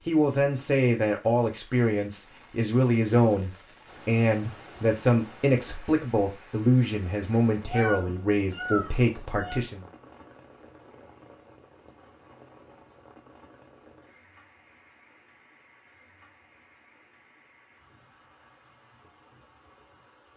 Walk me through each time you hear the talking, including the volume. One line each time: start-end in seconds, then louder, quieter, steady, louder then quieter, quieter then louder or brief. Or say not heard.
0.1-9.8 steady.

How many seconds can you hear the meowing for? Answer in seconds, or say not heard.
2 s.